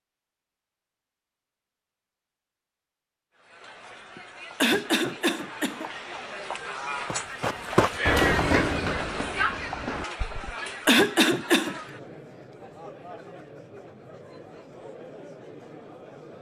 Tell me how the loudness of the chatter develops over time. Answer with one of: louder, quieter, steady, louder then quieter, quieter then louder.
louder then quieter.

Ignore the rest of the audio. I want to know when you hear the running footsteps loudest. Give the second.
8 s.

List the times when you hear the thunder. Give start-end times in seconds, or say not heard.
not heard.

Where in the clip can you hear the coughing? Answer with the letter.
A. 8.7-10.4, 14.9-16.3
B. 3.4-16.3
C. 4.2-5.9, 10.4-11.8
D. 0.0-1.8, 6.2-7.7
C.